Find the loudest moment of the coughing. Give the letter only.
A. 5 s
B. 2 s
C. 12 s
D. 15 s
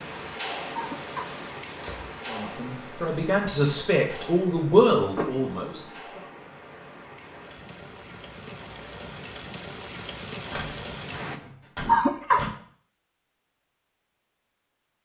C.